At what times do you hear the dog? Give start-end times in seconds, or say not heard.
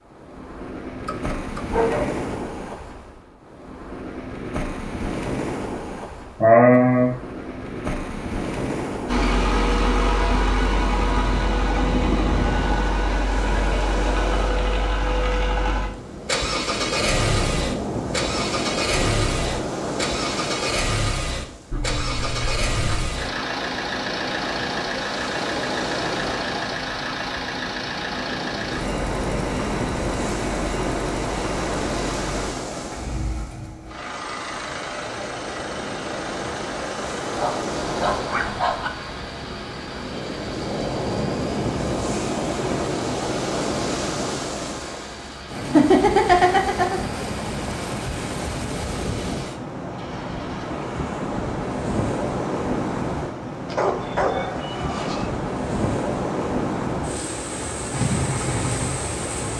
1.1-2.2, 21.7-23.1, 37.4-38.9, 53.6-55.3.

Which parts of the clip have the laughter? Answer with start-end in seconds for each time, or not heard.
6.4-7.1, 45.7-47.0.